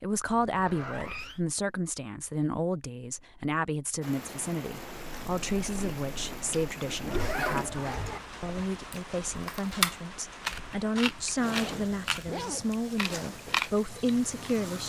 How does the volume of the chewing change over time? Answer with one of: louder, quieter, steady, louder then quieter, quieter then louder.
louder.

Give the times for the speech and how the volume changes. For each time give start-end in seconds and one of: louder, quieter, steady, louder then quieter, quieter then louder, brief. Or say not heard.
0.0-14.8 steady.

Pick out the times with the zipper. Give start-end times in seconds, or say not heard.
0.2-1.4, 7.0-8.2, 11.6-12.7.